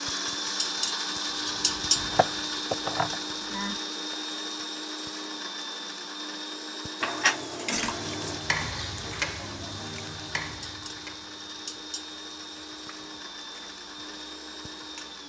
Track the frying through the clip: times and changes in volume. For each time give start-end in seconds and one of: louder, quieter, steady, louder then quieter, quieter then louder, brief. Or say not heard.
7.8-15.2 quieter.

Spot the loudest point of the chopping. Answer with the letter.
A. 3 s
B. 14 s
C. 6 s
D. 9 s
A.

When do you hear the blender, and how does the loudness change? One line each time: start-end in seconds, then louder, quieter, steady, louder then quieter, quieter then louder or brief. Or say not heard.
0.0-15.2 quieter.